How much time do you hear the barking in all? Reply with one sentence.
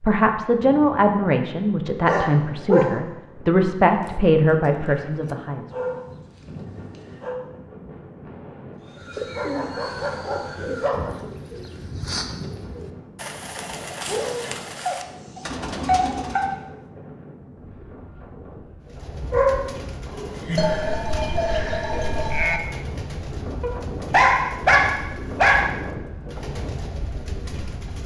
You can hear the barking for 10 seconds altogether.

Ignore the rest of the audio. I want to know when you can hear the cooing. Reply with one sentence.
You can hear the cooing from 8.8 to 16.6 s and from 18.9 to 28.0 s.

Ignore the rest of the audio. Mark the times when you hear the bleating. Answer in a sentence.
The bleating can be heard from 4.0 to 5.3 s and from 20.6 to 22.6 s.